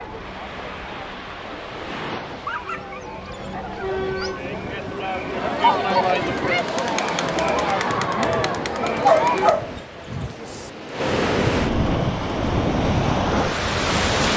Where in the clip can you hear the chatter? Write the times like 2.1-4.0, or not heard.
0.0-9.6.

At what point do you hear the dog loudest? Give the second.
9 s.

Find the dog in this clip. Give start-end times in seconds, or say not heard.
2.3-4.4, 8.8-10.7.